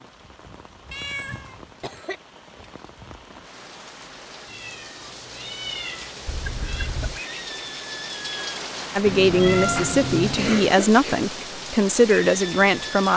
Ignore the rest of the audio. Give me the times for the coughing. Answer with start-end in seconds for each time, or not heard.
0.5-2.2, 6.2-7.2, 9.8-11.4.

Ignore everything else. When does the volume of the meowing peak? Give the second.
10 s.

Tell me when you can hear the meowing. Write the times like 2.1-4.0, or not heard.
0.9-1.6, 4.5-6.9, 9.1-10.7.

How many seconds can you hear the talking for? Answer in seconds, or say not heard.
4 s.